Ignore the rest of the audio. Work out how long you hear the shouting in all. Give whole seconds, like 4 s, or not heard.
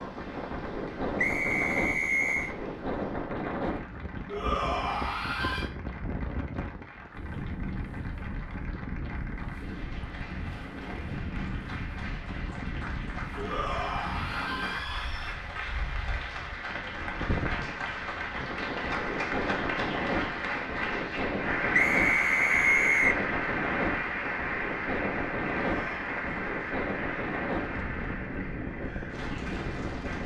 4 s.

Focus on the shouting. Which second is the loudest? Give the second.
5 s.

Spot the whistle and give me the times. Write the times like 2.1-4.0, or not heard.
1.1-2.5, 21.7-23.2.